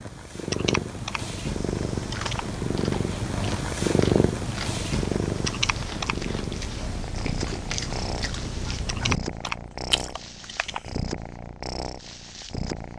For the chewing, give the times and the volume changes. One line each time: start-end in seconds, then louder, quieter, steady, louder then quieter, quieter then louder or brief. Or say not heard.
1.4-10.9 louder.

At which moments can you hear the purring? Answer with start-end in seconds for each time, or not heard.
0.0-12.9.